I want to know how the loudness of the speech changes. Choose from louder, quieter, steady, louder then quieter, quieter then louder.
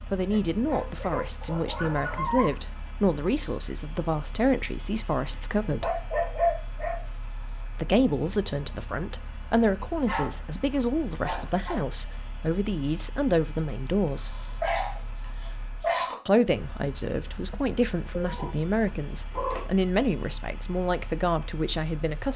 steady.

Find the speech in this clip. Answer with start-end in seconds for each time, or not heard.
0.1-6.0, 7.8-14.3, 16.2-22.3.